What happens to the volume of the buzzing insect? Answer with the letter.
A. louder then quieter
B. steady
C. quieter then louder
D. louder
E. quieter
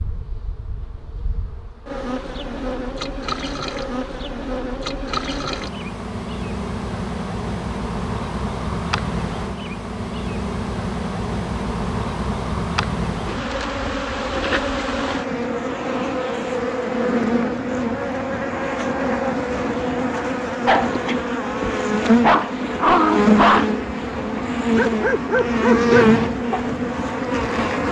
D.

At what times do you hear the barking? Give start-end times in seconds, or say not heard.
20.6-26.7.